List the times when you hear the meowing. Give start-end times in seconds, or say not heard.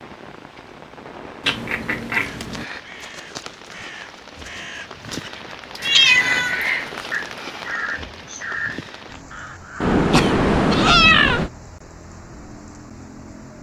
1.4-2.6, 5.8-6.6, 9.8-11.5.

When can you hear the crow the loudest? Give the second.
7 s.